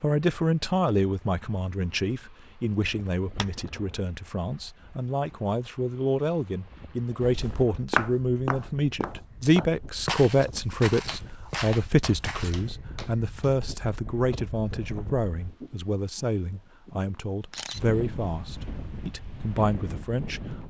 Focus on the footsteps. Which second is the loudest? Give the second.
8 s.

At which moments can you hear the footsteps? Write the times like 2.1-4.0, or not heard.
7.2-12.6.